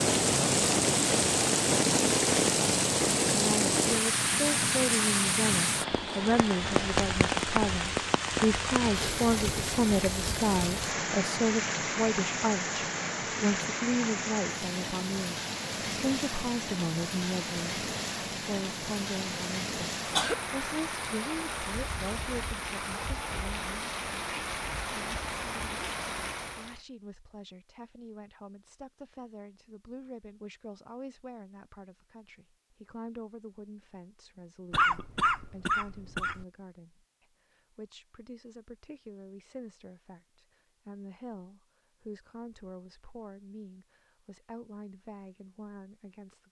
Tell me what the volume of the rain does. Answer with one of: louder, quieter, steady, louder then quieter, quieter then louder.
quieter.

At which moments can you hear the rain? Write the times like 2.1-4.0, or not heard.
0.0-26.8.